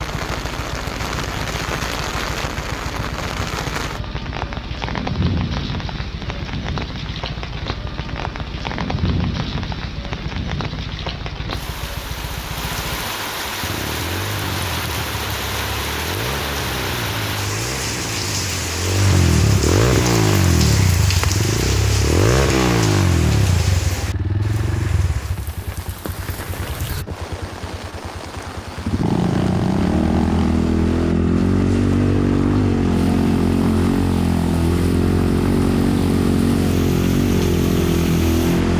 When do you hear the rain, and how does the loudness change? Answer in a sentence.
The rain can be heard from 0.0 to 38.7 s, getting quieter.